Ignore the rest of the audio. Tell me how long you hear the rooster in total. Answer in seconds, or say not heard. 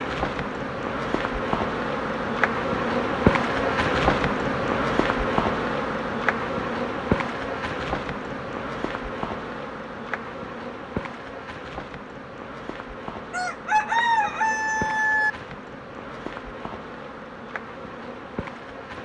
2 s.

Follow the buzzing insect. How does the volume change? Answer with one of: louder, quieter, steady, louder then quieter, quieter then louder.
quieter.